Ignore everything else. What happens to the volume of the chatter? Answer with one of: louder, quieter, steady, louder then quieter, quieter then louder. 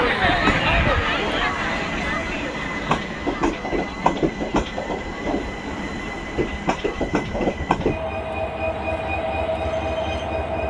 quieter.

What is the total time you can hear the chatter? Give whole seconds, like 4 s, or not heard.
7 s.